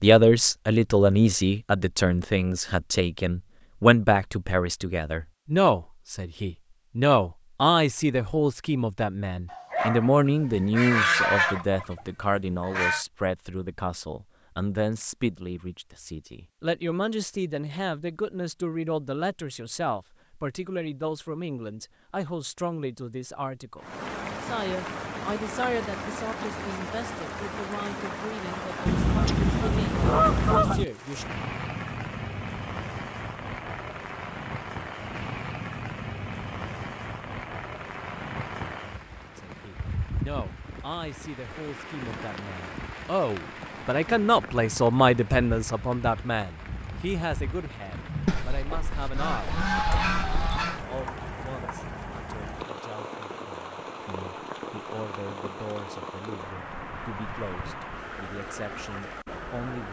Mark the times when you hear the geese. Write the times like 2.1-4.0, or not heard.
10.2-13.1, 28.9-30.9, 48.2-50.9.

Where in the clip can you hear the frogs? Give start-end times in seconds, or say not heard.
not heard.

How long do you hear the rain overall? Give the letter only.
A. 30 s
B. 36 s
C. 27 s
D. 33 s
B.